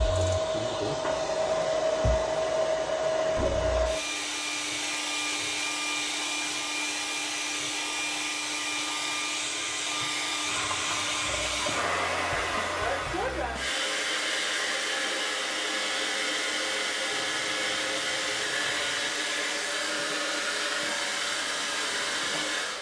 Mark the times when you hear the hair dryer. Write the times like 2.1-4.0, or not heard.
0.0-22.7.